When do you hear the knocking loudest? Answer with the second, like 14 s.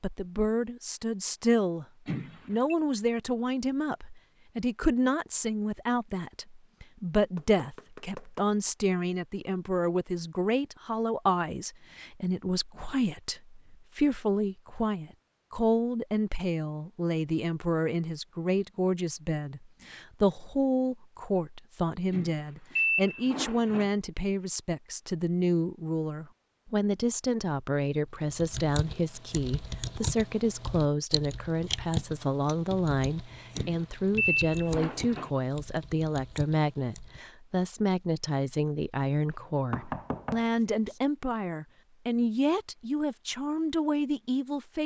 40 s.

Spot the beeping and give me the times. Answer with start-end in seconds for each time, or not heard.
2.0-2.8, 22.1-23.9, 33.5-35.3.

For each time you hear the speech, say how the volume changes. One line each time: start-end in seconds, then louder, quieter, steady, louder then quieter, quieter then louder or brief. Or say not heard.
0.0-1.9 brief
2.5-44.8 steady.